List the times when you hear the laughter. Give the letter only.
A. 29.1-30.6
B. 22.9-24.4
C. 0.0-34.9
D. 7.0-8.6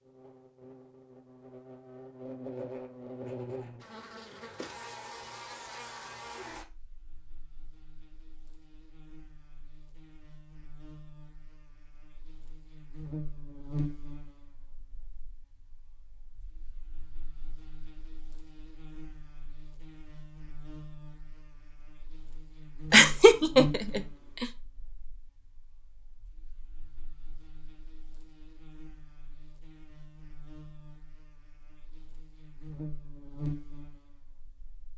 B.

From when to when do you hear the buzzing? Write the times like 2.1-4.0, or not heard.
0.0-34.9.